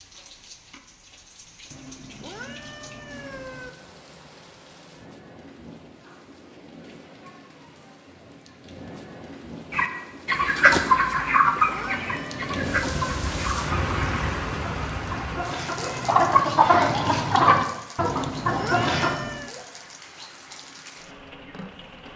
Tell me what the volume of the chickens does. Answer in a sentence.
The volume of the chickens goes down, then up.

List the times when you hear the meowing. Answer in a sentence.
You can hear the meowing from 1.7 to 3.7 s, from 11.2 to 13.0 s and from 17.9 to 19.6 s.